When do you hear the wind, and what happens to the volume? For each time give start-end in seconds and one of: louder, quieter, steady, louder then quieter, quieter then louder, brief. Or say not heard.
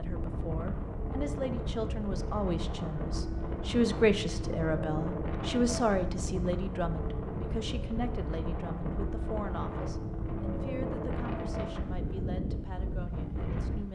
0.0-13.8 steady.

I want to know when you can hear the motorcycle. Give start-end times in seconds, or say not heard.
not heard.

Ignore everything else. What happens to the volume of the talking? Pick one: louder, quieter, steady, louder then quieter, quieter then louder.
louder then quieter.